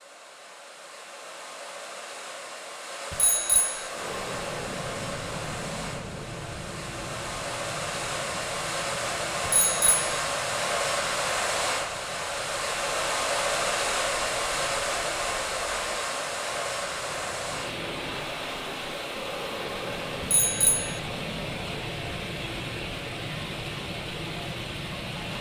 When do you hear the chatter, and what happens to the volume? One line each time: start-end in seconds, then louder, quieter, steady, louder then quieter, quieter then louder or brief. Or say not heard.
not heard.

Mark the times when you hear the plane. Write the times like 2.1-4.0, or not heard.
3.8-25.3.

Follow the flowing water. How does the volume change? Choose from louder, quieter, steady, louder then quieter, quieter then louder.
louder then quieter.